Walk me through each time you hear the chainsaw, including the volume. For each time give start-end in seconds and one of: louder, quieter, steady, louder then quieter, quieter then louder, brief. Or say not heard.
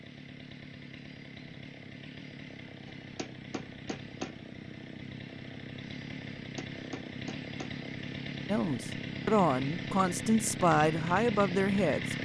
0.0-12.2 louder.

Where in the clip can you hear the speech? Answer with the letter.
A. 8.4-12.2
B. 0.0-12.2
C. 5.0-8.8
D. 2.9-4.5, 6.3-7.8
A.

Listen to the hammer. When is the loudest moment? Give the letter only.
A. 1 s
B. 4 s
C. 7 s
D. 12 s
B.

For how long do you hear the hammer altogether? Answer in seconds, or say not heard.
3 s.